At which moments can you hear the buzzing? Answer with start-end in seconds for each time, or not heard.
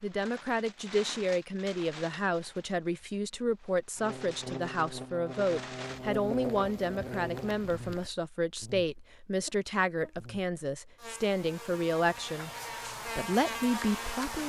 4.0-14.4.